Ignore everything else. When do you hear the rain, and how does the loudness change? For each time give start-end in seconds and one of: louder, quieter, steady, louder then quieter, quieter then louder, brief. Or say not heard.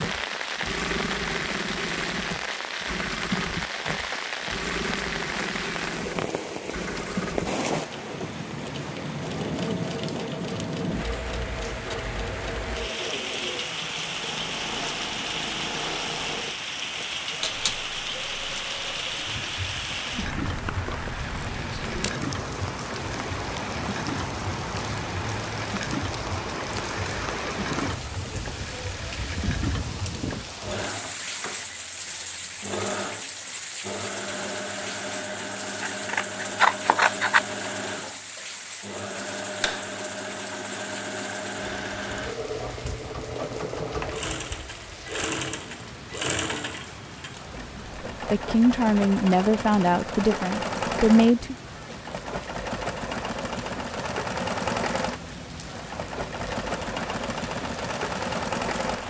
0.0-59.0 quieter.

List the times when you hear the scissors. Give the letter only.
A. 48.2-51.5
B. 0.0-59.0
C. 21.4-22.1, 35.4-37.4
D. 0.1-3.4
C.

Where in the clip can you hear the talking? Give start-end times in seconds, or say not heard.
48.2-51.5.